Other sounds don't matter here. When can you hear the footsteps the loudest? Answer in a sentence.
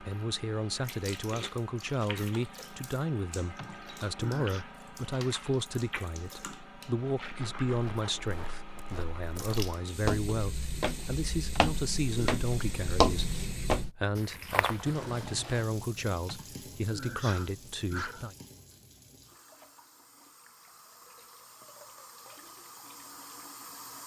The loudest moment of the footsteps is at 13 seconds.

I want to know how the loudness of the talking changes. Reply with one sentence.
The loudness of the talking stays about the same.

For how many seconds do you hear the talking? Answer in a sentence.
The talking can be heard for 18 seconds in total.